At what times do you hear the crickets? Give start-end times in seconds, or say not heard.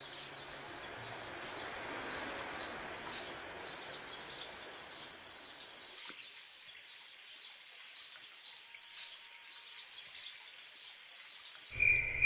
0.0-12.2.